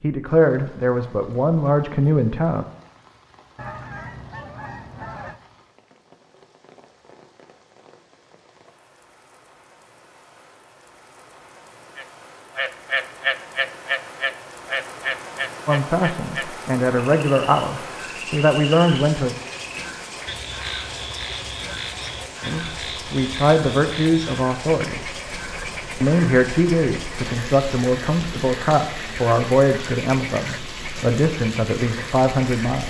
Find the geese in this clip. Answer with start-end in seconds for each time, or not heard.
3.5-5.4.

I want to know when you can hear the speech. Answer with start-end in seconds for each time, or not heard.
0.0-2.6, 15.7-19.4, 22.4-25.1, 26.0-32.8.